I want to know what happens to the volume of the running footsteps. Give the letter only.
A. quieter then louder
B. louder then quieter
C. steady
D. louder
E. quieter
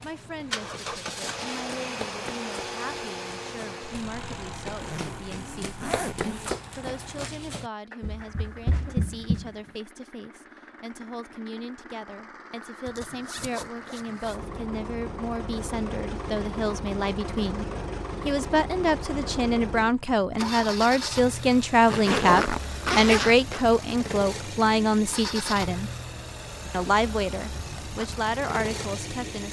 D.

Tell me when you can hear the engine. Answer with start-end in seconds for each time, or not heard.
0.0-29.4.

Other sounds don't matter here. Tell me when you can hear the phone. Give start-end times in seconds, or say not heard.
not heard.